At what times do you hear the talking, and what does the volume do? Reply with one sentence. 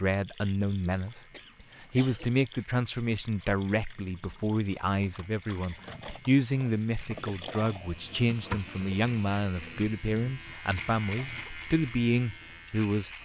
The talking can be heard from 0.0 to 13.1 s, at a steady volume.